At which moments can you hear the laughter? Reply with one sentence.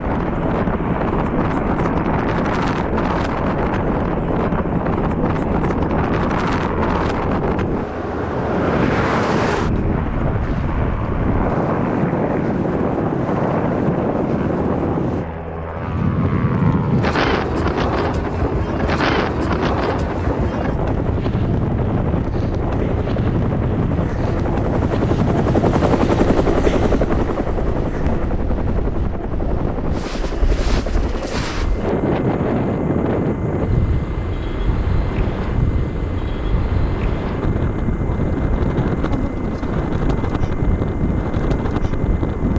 The laughter can't be heard in this clip.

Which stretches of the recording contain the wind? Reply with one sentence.
You can hear the wind from 0.0 to 42.5 s.